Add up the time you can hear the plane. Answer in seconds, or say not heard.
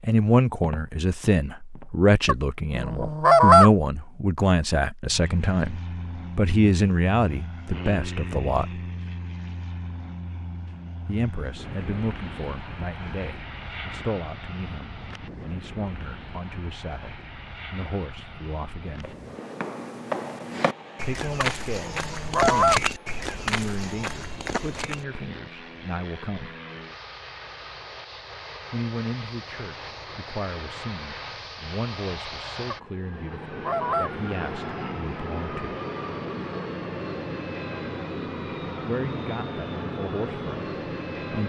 36 s.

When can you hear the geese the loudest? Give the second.
3 s.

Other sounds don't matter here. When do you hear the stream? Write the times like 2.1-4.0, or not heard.
not heard.